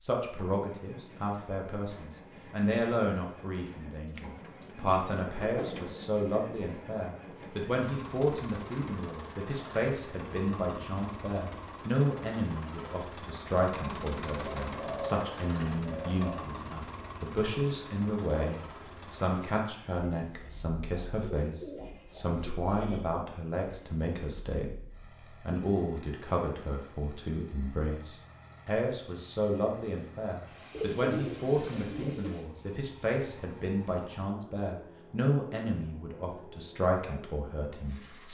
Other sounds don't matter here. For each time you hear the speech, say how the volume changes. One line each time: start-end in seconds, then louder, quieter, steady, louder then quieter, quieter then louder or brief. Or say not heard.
0.0-38.2 steady.